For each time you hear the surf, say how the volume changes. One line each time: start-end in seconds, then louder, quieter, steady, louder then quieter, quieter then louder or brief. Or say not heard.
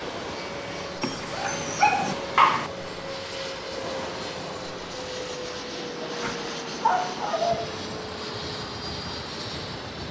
0.0-10.0 steady.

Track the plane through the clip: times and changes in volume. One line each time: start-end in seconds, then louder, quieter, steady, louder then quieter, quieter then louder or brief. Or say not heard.
0.0-10.0 steady.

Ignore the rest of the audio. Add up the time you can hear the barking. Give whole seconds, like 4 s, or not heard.
4 s.